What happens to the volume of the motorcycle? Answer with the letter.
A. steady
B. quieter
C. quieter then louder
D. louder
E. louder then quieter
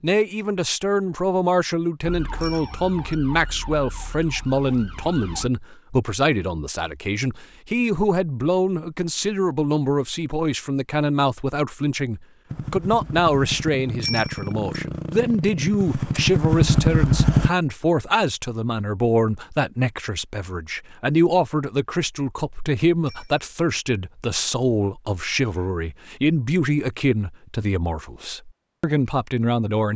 D.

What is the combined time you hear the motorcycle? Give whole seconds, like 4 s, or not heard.
5 s.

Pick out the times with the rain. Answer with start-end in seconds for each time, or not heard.
not heard.